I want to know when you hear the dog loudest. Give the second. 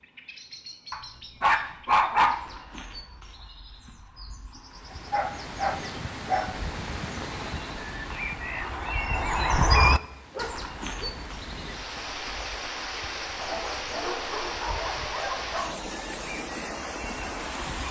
2 s.